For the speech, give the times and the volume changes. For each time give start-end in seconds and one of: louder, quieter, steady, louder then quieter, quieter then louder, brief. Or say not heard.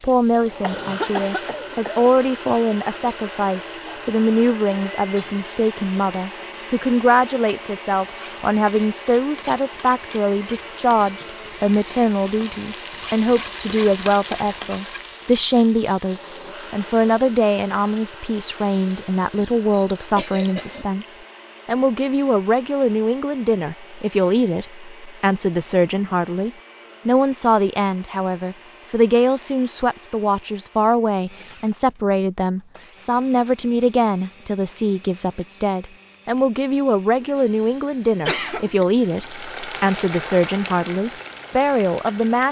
0.0-42.4 steady.